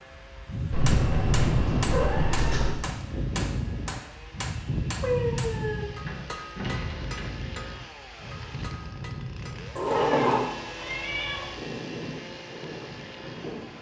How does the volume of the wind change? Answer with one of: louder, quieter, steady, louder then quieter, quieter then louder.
quieter.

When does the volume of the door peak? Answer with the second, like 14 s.
10 s.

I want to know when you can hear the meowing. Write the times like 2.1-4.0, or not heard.
0.7-2.8, 5.0-5.8, 10.0-11.5.